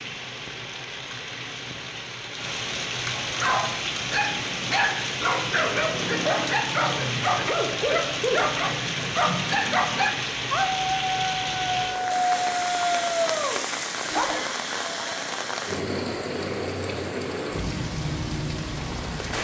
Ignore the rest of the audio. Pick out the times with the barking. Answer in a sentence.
You can hear the barking from 3.2 to 14.4 s.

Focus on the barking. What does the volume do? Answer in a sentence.
The loudness of the barking stays about the same.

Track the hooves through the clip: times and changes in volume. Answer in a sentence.
The hooves can't be heard in this clip.